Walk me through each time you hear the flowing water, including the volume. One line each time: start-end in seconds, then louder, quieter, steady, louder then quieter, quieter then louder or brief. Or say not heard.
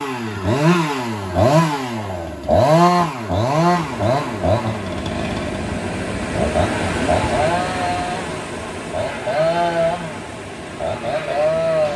3.6-11.9 louder then quieter.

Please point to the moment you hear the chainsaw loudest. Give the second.
3 s.